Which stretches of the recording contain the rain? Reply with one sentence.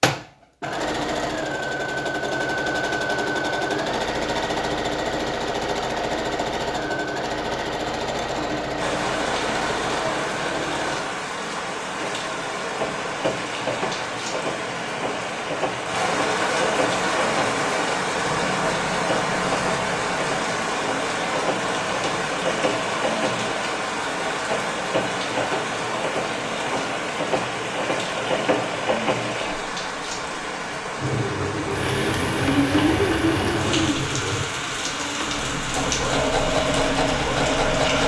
The rain can be heard from 8.8 to 38.0 s.